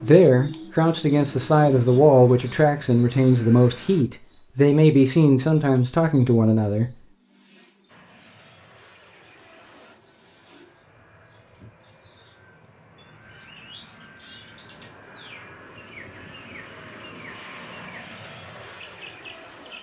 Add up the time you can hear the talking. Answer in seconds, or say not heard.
7 s.